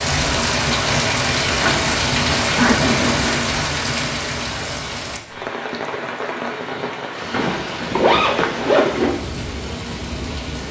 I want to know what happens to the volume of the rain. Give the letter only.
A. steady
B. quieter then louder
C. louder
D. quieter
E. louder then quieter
D.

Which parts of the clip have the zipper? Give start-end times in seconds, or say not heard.
1.6-3.4, 7.3-9.2.